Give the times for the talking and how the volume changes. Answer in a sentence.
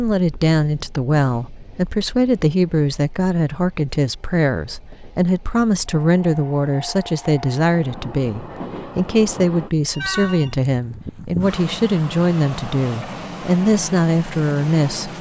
The talking can be heard from 0.0 to 15.1 s, at a steady volume.